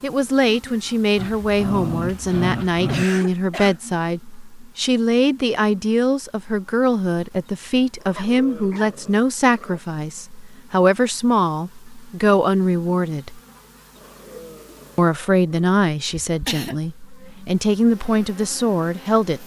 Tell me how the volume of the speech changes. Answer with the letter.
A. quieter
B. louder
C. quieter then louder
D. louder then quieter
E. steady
E.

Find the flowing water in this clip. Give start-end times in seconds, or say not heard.
not heard.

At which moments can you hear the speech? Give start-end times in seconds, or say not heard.
0.0-13.4, 14.9-19.4.